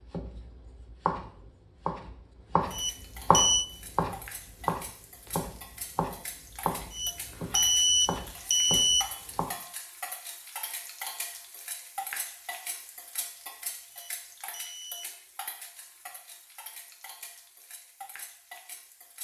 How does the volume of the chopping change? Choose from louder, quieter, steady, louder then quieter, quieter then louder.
louder then quieter.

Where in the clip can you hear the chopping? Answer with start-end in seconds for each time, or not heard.
0.0-9.5.